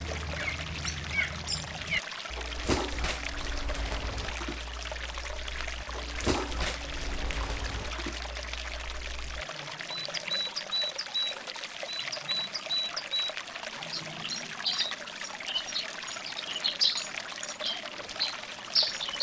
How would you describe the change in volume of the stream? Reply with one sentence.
The volume of the stream stays about the same.